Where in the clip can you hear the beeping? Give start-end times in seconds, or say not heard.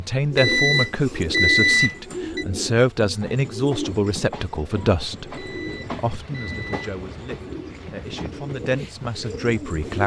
0.3-2.5, 5.3-6.8.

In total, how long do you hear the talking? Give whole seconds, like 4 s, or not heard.
10 s.